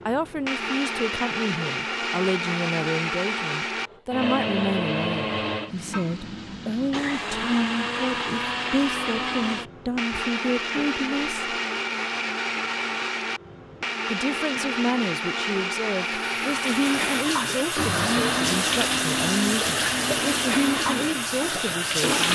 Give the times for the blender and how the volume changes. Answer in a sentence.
The blender can be heard from 0.0 to 22.3 s, at a steady volume.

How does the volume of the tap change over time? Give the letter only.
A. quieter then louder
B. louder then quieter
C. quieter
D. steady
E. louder
D.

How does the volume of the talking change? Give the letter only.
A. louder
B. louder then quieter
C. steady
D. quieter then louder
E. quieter
C.